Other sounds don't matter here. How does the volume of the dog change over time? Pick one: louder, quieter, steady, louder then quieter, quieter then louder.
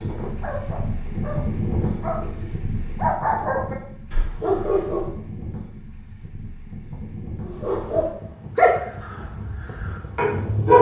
louder.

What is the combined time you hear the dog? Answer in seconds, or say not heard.
8 s.